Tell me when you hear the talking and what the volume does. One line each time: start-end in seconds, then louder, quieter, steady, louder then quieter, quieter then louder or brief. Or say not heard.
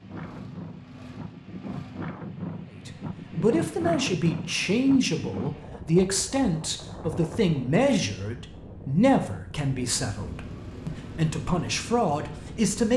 2.7-12.9 steady.